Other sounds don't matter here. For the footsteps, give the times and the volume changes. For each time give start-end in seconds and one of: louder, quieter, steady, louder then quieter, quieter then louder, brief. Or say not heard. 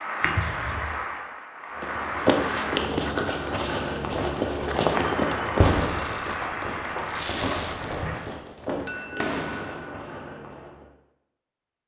1.8-10.8 quieter.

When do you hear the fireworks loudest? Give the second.
6 s.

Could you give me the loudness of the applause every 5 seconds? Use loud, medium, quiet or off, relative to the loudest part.
loud, loud, off.